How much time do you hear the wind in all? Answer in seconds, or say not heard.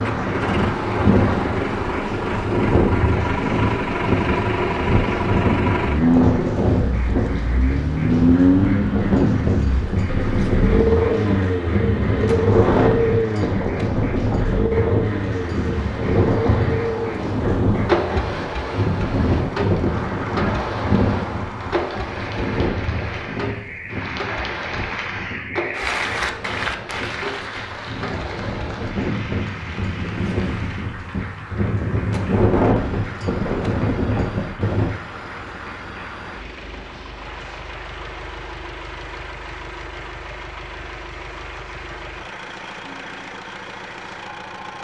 35 s.